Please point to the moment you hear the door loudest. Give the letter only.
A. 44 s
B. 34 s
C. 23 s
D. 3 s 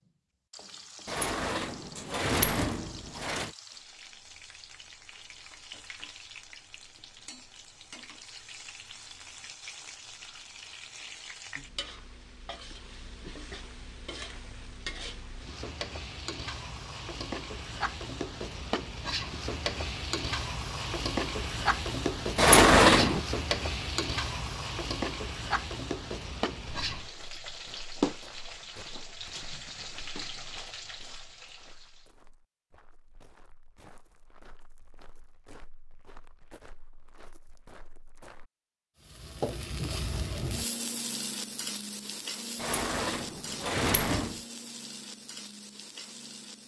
C.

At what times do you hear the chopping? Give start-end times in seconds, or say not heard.
not heard.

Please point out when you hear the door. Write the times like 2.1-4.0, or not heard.
1.1-3.5, 22.4-23.2, 42.6-44.4.